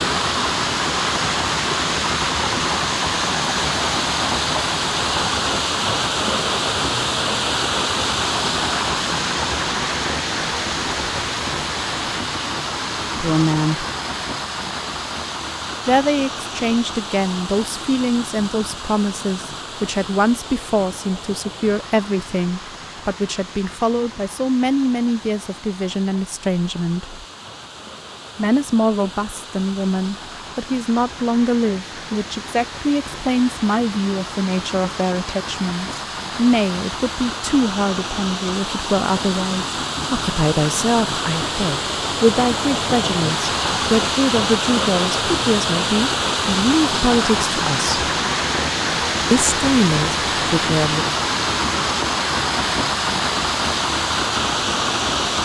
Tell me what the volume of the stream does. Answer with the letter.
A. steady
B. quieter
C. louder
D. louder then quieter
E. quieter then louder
E.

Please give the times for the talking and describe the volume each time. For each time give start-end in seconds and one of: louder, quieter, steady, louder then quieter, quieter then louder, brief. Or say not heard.
13.2-13.8 brief
15.8-27.2 steady
28.4-48.0 steady
49.3-51.1 brief.